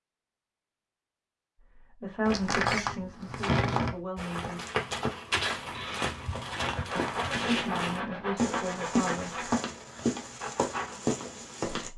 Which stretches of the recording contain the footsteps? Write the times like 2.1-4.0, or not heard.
4.2-11.9.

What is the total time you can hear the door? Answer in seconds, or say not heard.
3 s.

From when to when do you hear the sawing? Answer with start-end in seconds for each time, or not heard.
5.7-11.0.